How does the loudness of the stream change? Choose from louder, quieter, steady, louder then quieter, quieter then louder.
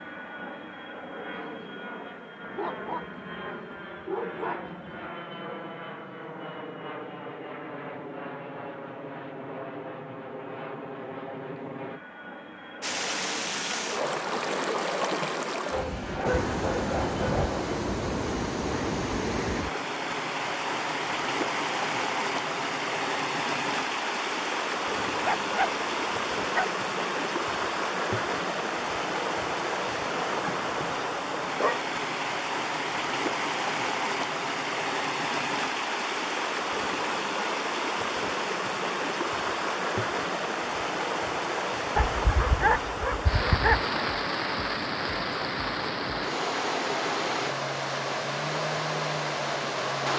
steady.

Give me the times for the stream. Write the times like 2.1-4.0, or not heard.
12.8-50.1.